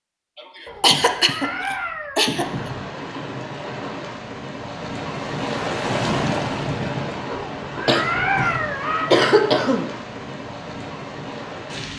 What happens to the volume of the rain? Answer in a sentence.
The volume of the rain goes up, then down.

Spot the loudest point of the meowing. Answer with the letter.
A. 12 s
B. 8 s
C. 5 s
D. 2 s
B.